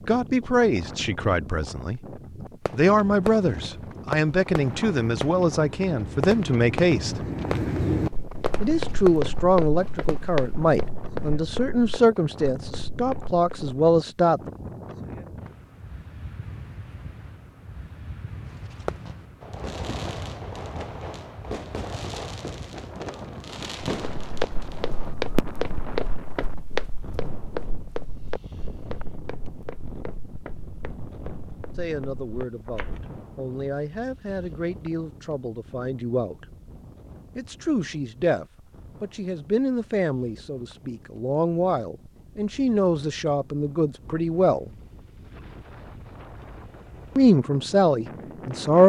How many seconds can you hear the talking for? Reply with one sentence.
You can hear the talking for 26 seconds altogether.